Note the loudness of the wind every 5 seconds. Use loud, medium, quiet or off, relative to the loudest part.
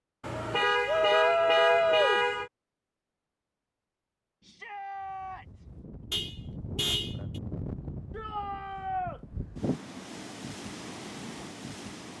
off, loud, loud.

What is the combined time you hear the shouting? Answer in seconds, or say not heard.
4 s.